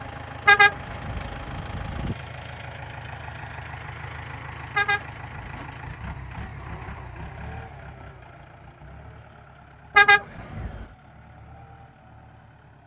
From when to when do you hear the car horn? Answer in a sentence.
The car horn can be heard from 0.5 to 2.1 s, from 4.8 to 5.8 s and from 9.9 to 10.8 s.